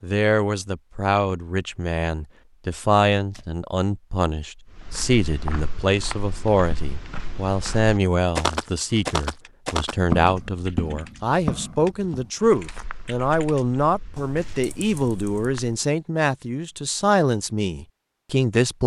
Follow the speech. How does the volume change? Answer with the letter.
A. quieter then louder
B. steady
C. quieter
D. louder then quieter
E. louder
B.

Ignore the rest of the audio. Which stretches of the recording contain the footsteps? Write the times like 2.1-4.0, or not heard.
4.7-15.8.